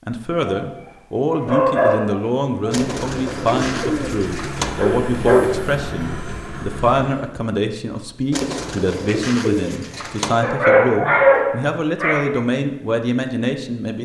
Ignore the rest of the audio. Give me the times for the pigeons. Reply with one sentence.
The pigeons can be heard from 2.7 to 4.7 s and from 8.3 to 10.3 s.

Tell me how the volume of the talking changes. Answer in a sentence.
The volume of the talking stays about the same.